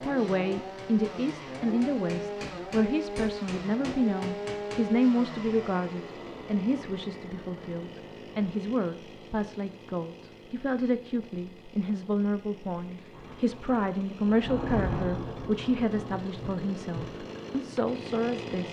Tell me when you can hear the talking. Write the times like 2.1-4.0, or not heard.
0.0-18.6.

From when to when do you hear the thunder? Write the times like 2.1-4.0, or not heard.
13.2-17.1.